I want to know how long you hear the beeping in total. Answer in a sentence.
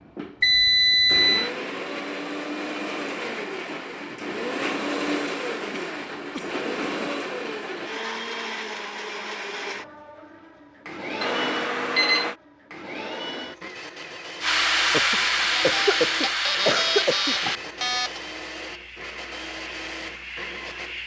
You can hear the beeping for 5 seconds altogether.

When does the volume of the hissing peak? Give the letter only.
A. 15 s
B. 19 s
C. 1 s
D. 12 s
A.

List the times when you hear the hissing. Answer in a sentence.
You can hear the hissing from 14.4 to 21.0 s.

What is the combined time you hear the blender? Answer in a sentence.
The blender can be heard for 21 seconds in total.